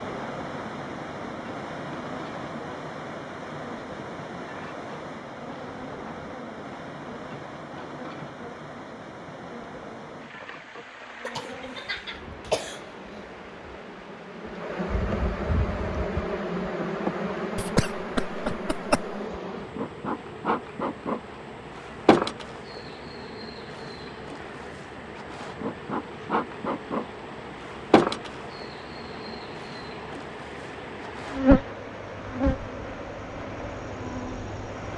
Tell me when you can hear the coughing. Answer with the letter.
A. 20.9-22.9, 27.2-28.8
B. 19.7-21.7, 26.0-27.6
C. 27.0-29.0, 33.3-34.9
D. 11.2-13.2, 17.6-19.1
D.